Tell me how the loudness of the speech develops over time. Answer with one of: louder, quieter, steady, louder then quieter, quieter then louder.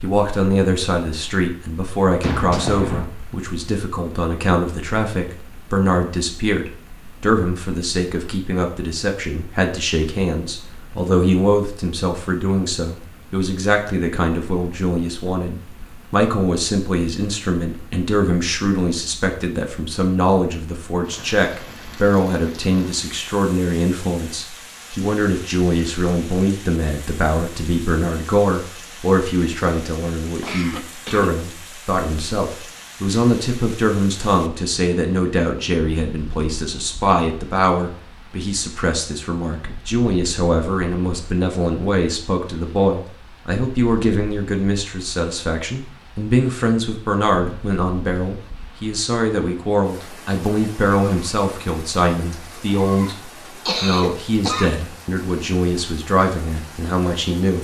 steady.